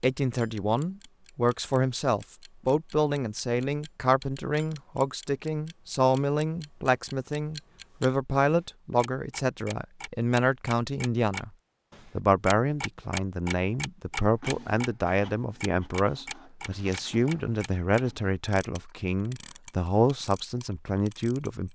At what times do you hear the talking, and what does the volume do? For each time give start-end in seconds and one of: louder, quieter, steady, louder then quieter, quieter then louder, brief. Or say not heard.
0.0-11.5 steady
12.2-21.7 steady.